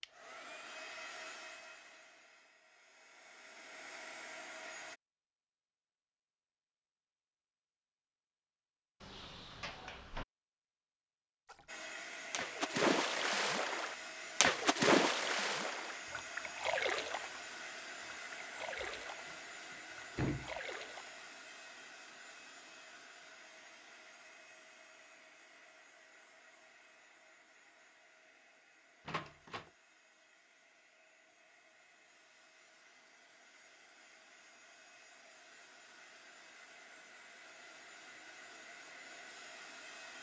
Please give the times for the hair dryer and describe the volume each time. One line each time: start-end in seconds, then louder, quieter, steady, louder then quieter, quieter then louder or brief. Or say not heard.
0.0-5.0 quieter then louder
11.7-40.1 quieter then louder.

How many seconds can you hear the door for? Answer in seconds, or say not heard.
3 s.